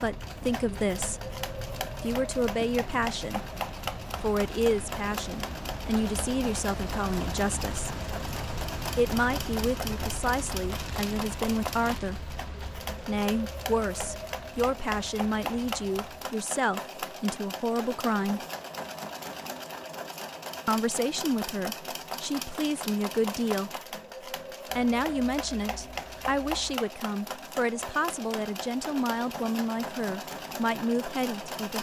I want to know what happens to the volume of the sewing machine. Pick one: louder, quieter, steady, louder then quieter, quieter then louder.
steady.